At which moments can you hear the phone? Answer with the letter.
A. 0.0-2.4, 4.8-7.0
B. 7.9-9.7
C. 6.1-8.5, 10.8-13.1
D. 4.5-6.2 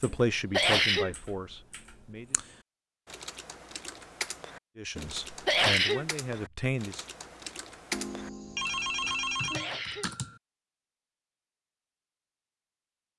B.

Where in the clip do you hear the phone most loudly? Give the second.
9 s.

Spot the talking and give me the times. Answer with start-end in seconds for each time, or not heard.
0.0-2.4, 4.8-7.0.